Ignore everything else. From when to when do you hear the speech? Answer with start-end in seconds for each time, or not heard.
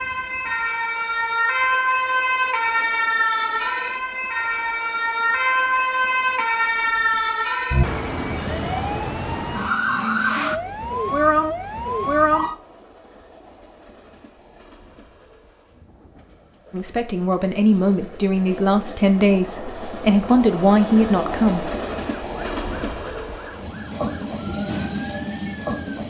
16.7-21.7.